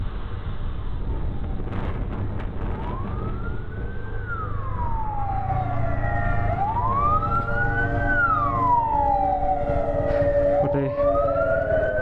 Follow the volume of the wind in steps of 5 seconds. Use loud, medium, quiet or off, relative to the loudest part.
loud, loud, off.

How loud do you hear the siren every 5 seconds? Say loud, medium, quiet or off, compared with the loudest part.
quiet, loud, loud.